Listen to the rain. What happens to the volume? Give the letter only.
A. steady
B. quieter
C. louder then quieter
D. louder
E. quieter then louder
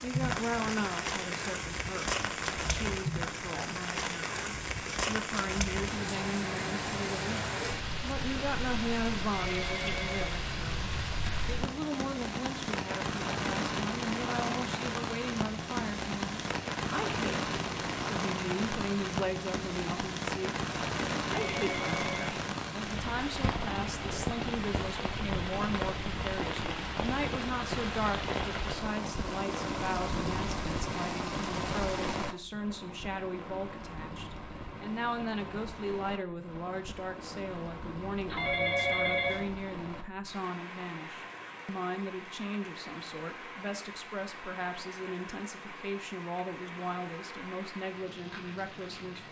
B.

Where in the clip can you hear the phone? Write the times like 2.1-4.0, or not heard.
9.3-10.4, 21.4-22.4, 38.2-39.5.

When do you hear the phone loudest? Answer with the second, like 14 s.
39 s.